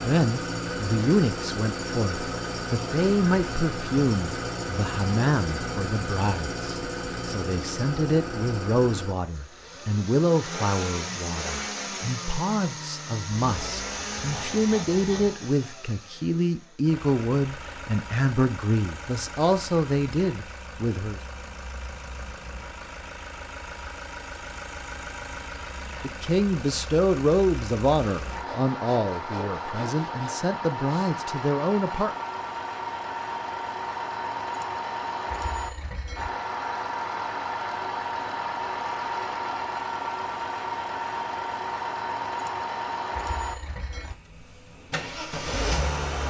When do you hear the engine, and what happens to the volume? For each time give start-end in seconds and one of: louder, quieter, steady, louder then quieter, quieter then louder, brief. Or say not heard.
0.0-46.2 quieter then louder.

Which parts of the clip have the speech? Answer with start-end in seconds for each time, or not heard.
0.0-21.2, 26.0-32.1.